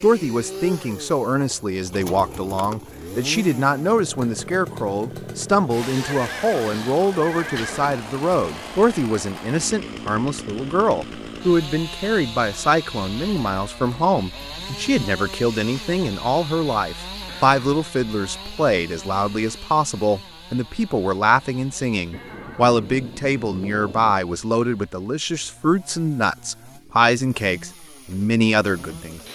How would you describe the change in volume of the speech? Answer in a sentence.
The volume of the speech stays about the same.